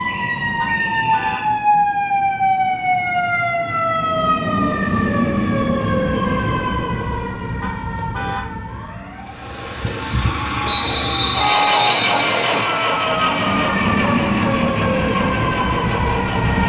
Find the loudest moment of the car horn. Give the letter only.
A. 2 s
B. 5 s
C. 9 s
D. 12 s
D.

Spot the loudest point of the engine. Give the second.
12 s.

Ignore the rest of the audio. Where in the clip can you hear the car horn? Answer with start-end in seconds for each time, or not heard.
0.6-1.5, 7.6-8.6, 11.3-12.0.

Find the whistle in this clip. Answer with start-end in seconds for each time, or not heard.
0.1-1.6, 10.7-12.7.